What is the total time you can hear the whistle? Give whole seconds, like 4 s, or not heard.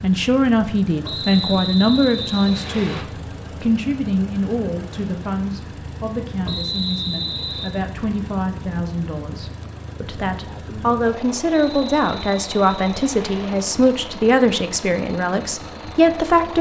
5 s.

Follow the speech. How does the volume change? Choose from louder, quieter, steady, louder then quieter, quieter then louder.
quieter then louder.